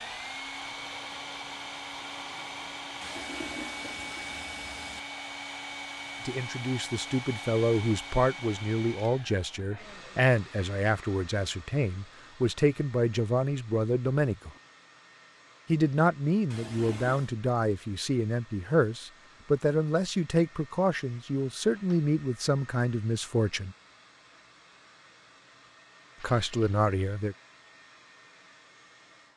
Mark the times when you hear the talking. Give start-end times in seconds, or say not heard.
6.2-14.5, 15.7-23.8, 26.2-27.4.